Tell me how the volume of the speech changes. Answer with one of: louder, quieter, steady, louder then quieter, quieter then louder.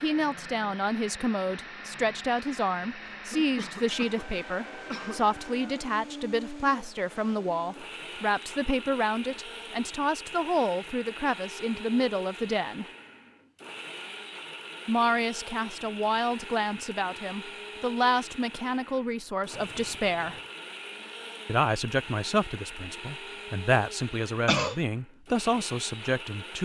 steady.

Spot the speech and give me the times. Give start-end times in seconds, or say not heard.
0.0-12.8, 14.8-20.4, 21.4-26.5.